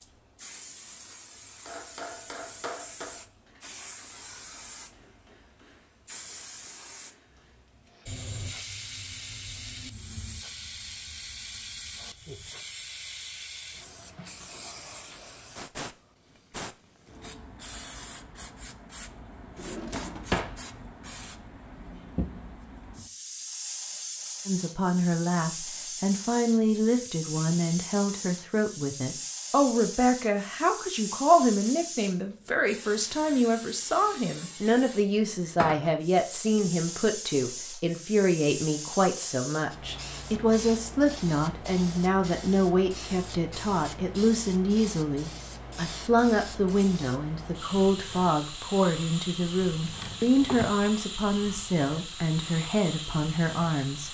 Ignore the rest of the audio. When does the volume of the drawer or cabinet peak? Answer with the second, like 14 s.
20 s.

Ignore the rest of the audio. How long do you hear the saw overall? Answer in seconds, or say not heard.
not heard.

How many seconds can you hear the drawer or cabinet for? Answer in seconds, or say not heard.
2 s.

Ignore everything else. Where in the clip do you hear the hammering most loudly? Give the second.
3 s.